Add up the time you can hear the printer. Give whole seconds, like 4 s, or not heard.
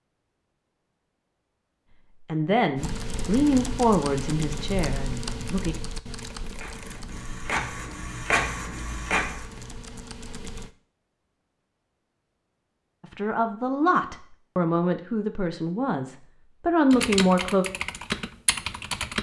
3 s.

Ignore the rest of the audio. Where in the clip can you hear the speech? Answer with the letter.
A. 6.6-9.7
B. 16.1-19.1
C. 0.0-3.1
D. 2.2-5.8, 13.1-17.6
D.